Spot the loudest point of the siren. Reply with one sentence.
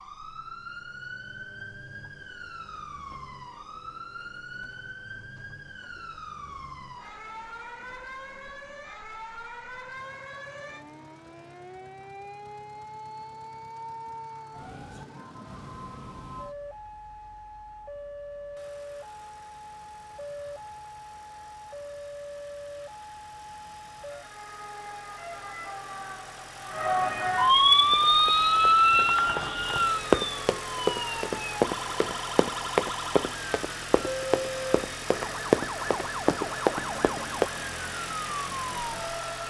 The volume of the siren peaks at 28 seconds.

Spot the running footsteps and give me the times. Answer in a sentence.
The running footsteps can be heard from 27.8 to 37.5 s.